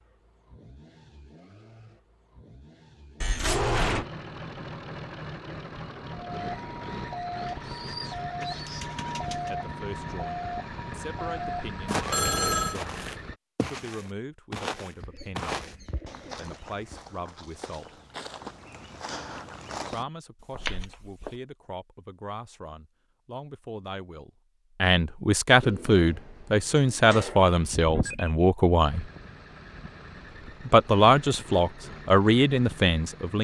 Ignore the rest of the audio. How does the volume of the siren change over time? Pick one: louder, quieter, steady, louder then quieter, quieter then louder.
steady.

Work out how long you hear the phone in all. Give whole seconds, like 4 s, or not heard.
3 s.